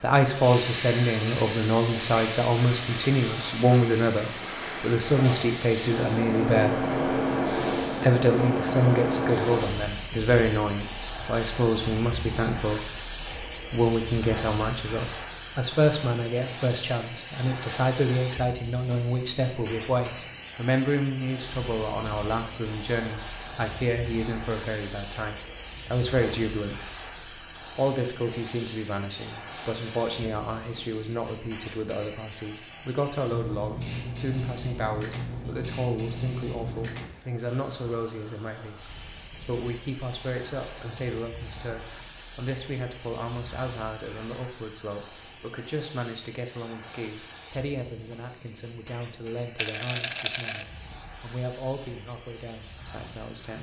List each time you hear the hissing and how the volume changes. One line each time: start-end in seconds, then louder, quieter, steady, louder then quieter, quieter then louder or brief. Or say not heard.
0.0-53.5 quieter.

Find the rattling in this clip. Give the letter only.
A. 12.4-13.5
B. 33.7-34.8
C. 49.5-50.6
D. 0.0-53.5
C.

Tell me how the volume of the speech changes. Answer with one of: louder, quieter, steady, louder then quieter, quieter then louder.
quieter.